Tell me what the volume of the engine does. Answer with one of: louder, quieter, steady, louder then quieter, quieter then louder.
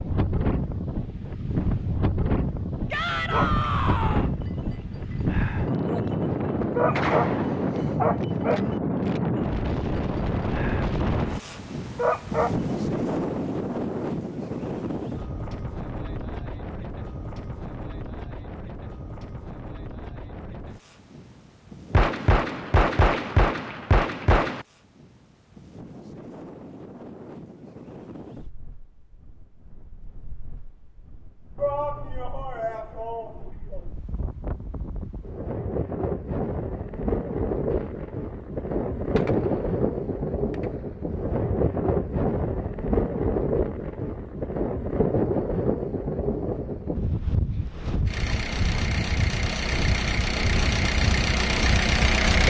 louder.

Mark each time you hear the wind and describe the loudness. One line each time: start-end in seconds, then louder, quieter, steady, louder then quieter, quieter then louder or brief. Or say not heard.
0.0-52.4 quieter then louder.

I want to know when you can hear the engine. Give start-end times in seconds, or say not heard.
48.0-52.4.